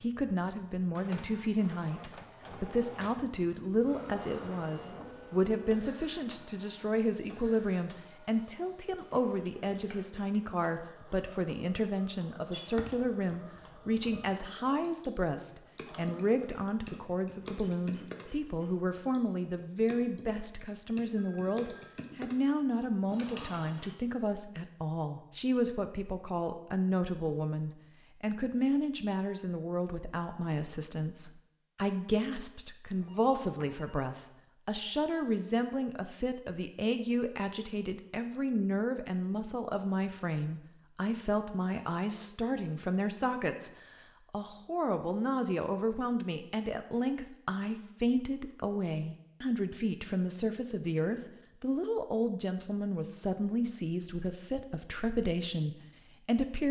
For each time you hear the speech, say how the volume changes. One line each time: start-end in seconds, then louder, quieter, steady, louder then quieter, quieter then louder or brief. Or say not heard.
0.0-56.6 steady.